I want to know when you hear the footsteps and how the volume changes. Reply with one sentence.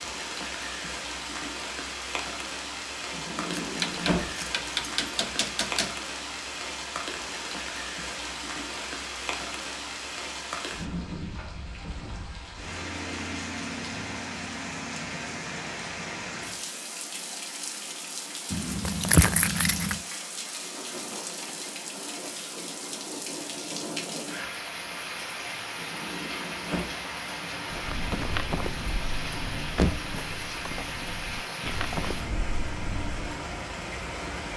You can hear the footsteps from 27.7 to 33.1 s, getting quieter then louder.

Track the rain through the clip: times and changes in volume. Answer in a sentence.
You can hear the rain from 0.0 to 34.5 s, at a steady volume.